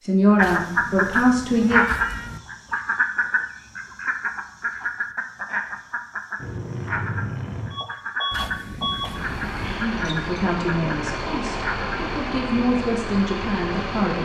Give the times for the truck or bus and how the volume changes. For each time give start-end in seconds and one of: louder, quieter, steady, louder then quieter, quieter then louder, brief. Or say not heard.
6.3-14.1 steady.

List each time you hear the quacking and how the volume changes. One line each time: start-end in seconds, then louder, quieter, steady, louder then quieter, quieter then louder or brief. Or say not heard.
0.3-12.0 quieter.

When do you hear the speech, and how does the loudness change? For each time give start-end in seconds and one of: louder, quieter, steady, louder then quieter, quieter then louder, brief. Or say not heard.
0.0-1.9 brief
9.7-14.1 quieter then louder.